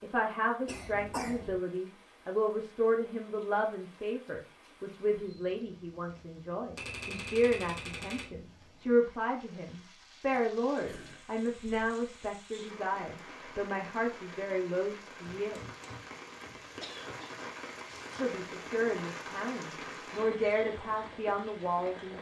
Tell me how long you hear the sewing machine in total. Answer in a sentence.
The sewing machine can't be heard in this clip.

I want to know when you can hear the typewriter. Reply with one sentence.
The typewriter can be heard from 6.8 to 8.3 s and from 15.2 to 17.1 s.